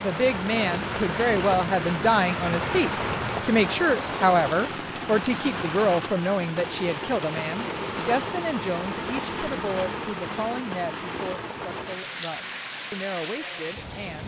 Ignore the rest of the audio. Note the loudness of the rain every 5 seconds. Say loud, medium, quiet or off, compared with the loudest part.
loud, loud, medium.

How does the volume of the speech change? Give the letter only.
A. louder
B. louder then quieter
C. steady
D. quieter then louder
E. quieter
E.